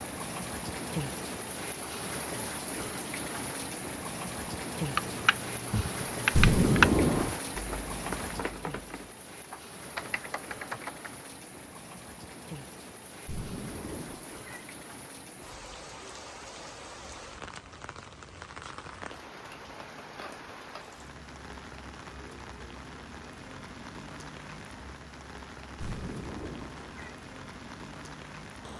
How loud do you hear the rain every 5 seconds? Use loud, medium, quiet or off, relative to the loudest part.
loud, loud, medium, medium, medium, medium.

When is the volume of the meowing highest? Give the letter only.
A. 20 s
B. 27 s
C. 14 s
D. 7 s
D.